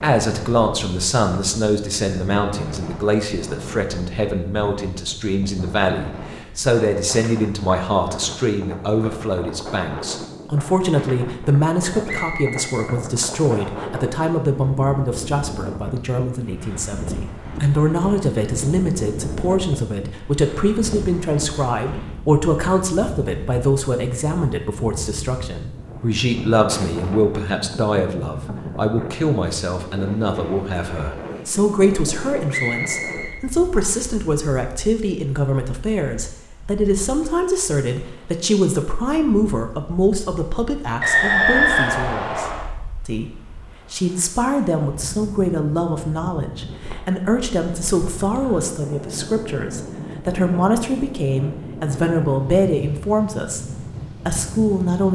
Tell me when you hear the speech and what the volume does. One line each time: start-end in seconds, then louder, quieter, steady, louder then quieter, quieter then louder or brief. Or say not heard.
0.0-53.6 steady
54.2-55.1 brief.